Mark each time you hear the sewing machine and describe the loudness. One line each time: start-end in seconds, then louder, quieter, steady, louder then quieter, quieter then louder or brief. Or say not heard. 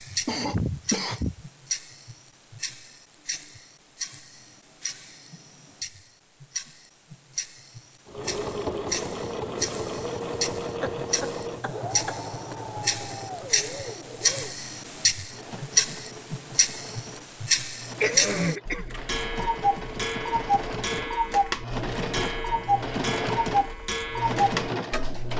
8.1-25.3 quieter then louder.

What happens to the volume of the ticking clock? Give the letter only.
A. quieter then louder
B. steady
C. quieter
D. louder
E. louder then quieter
D.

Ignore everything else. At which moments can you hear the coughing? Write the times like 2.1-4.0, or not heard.
0.2-1.4, 10.8-12.6, 18.0-18.9.